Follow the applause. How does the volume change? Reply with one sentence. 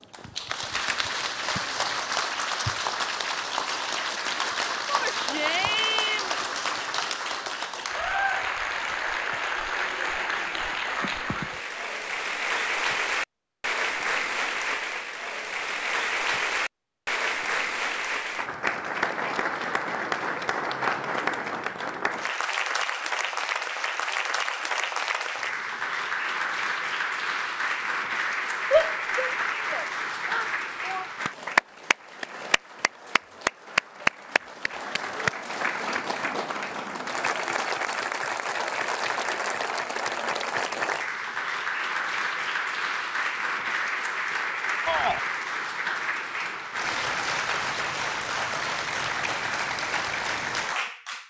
The volume of the applause stays about the same.